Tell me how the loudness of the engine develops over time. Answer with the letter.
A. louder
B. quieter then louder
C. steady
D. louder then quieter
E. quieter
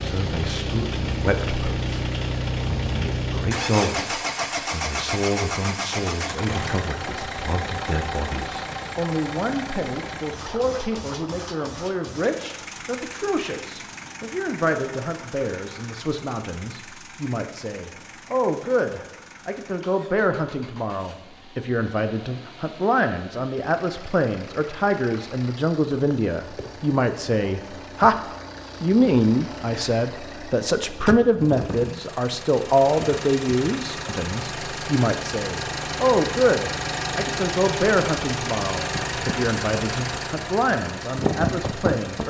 B.